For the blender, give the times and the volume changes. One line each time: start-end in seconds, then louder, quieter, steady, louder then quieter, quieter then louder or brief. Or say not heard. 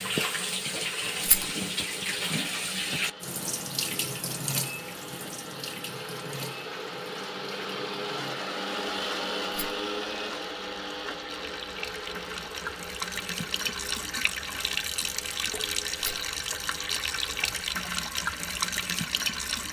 0.0-19.6 louder then quieter.